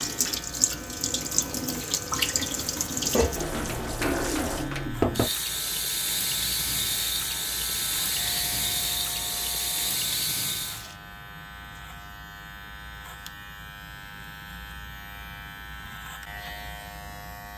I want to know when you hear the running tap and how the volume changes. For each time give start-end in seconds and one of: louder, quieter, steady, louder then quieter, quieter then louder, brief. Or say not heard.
0.0-10.9 steady.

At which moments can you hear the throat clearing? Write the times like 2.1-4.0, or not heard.
not heard.